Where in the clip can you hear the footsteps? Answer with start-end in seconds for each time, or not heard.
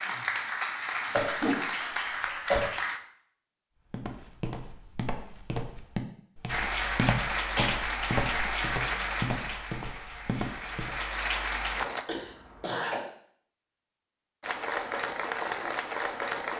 3.9-11.0.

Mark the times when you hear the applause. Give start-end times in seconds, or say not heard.
0.0-3.0, 6.5-12.1, 14.4-16.5.